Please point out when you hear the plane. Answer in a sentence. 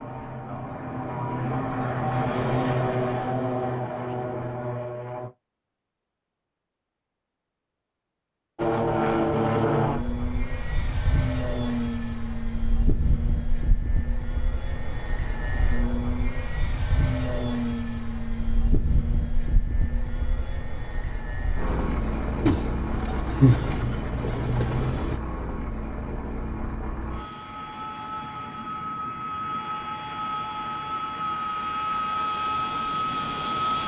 The plane can be heard from 0.0 to 5.3 s and from 8.6 to 33.8 s.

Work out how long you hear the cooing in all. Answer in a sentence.
You can hear the cooing for 3 seconds altogether.